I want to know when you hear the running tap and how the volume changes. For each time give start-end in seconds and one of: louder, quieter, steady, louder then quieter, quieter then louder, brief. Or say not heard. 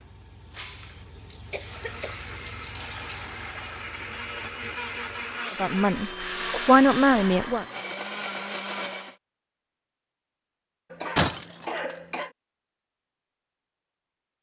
0.0-5.5 louder then quieter.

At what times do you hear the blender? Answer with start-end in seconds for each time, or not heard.
1.6-9.2.